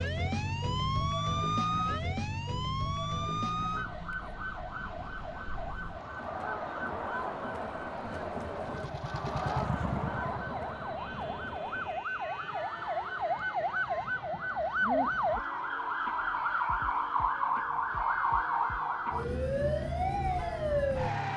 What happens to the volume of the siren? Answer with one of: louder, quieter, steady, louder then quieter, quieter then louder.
quieter then louder.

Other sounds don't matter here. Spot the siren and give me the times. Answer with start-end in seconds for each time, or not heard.
0.0-21.3.